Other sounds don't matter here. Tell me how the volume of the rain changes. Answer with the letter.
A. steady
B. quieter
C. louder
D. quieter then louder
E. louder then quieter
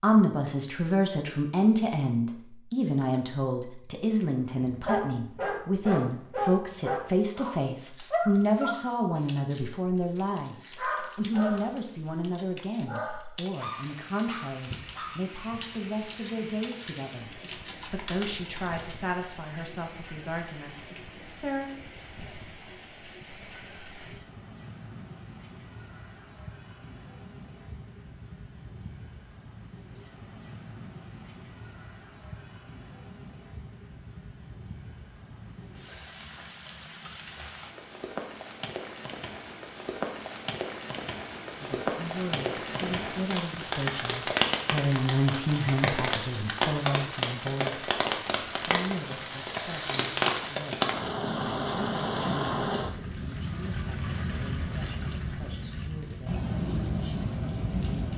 C.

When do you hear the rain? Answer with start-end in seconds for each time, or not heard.
13.5-58.1.